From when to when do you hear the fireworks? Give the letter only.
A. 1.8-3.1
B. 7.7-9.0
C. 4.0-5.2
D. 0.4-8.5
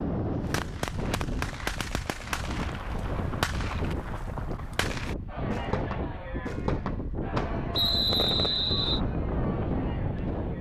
D.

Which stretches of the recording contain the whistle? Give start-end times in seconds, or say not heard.
7.7-9.0.